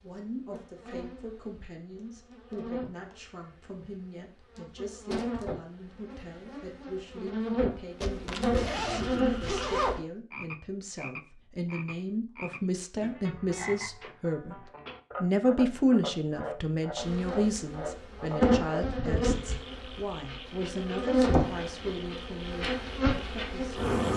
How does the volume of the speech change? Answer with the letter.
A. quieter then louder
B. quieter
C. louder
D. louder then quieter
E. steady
D.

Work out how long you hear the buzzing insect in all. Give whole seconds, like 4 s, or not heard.
17 s.